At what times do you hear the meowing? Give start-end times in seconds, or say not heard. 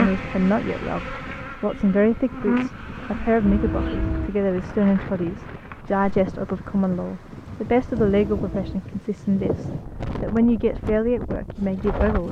3.5-4.3, 8.1-8.8.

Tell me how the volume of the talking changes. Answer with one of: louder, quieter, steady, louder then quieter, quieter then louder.
steady.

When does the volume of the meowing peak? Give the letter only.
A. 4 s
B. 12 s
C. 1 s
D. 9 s
A.